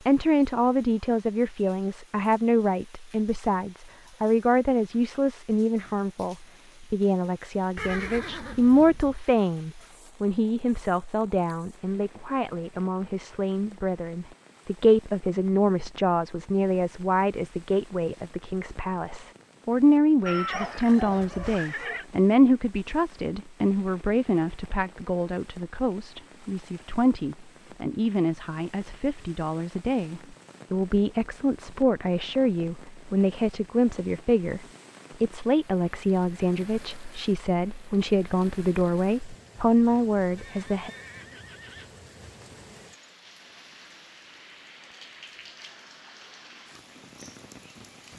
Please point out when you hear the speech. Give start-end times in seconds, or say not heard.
0.1-40.9.